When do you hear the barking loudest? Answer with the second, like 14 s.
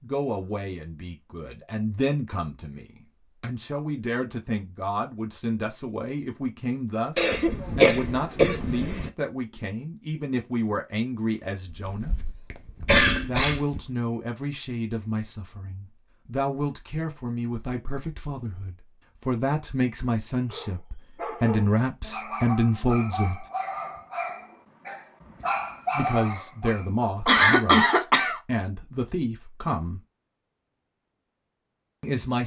26 s.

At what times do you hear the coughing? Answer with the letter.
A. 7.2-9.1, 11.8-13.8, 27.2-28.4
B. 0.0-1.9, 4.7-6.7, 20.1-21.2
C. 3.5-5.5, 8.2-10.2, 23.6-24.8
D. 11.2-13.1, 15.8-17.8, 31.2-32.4
A.